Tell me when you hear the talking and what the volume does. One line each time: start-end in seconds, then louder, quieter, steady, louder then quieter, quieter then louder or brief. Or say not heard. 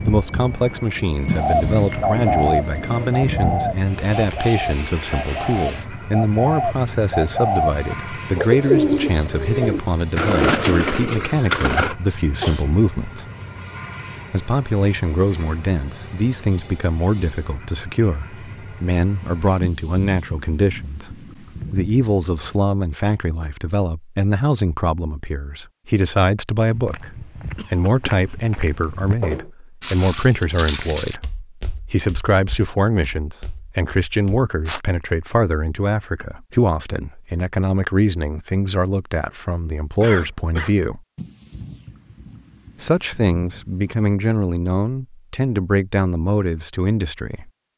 0.1-13.2 steady
14.3-41.0 steady
42.8-47.5 steady.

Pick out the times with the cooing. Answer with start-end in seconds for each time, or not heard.
1.4-11.9.